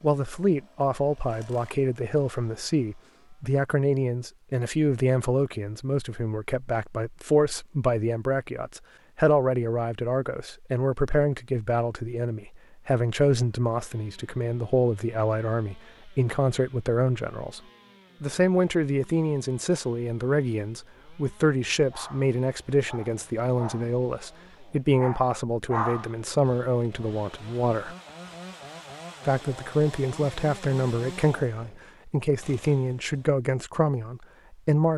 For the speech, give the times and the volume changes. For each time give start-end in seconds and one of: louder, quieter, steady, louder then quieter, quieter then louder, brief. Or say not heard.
0.0-17.6 steady
18.2-27.9 steady
29.2-34.9 steady.